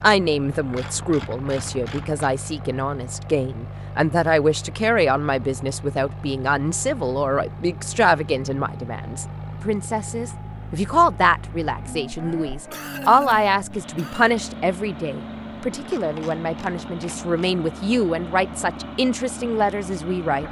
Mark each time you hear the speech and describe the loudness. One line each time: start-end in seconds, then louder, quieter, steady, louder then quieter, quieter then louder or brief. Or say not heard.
0.0-20.4 steady.